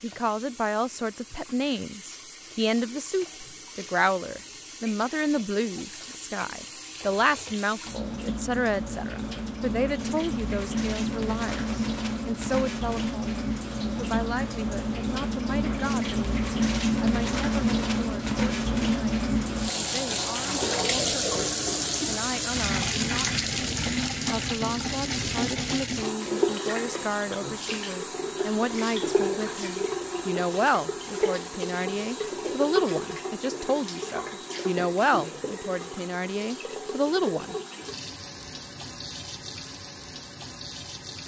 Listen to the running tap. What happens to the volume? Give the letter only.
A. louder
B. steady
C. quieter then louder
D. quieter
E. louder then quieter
E.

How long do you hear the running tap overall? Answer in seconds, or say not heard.
41 s.